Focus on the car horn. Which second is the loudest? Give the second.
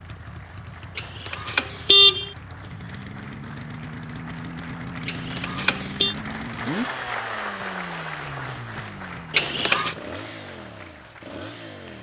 2 s.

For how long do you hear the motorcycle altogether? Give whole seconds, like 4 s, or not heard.
12 s.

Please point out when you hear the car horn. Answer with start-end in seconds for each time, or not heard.
0.9-2.3, 5.0-6.2, 9.3-9.9.